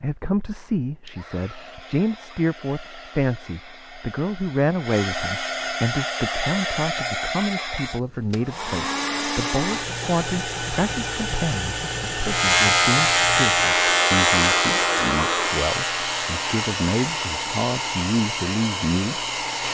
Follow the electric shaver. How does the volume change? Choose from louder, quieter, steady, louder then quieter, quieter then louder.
quieter.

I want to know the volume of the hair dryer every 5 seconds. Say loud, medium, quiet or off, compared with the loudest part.
quiet, loud, loud, loud.